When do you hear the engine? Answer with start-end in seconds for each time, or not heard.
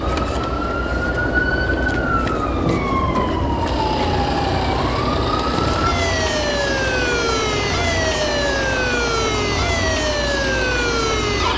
0.0-11.5.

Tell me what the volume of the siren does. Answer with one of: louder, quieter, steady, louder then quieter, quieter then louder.
steady.